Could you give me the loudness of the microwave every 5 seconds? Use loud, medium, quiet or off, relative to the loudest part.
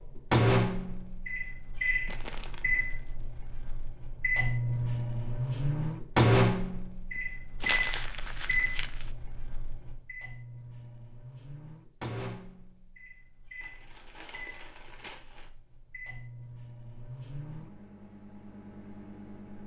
loud, loud, quiet, quiet.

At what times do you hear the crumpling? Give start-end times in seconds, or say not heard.
2.0-2.7, 7.2-9.1, 13.6-15.5.